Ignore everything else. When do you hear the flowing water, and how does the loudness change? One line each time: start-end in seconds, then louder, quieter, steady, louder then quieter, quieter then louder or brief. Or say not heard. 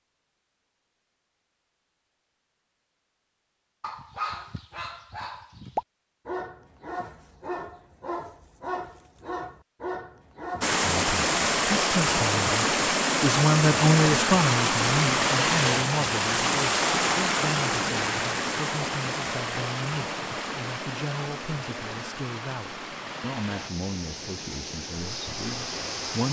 10.6-26.2 quieter.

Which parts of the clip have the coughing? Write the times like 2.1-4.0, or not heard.
not heard.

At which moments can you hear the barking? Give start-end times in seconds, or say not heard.
3.8-10.8.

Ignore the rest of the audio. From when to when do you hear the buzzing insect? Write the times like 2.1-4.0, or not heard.
not heard.